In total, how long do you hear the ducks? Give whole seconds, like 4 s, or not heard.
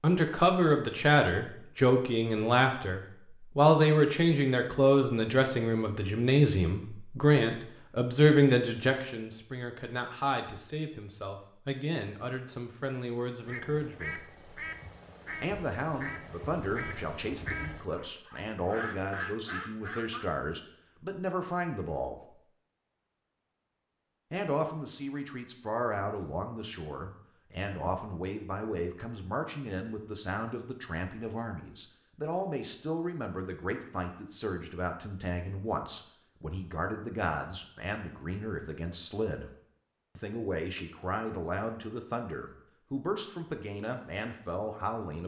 7 s.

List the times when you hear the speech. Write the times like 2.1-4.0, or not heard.
0.0-14.2, 15.4-22.4, 24.3-39.5, 40.1-45.2.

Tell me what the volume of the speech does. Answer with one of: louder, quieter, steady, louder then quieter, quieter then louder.
quieter.